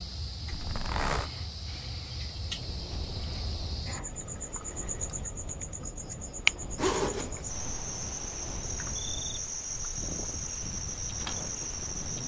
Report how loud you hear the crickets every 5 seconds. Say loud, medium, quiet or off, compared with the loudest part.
medium, loud, loud.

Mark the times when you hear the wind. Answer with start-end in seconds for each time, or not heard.
2.2-12.2.